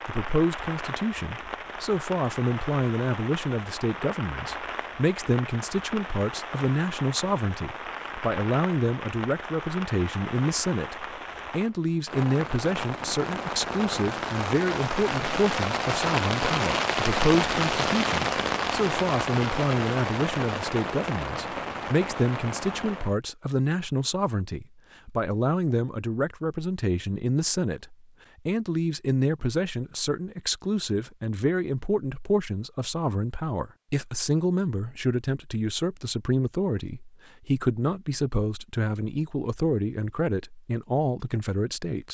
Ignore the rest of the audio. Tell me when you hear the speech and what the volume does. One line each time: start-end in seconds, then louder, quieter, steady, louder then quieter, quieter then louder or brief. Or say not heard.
0.1-42.0 steady.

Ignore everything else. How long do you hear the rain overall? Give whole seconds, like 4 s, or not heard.
23 s.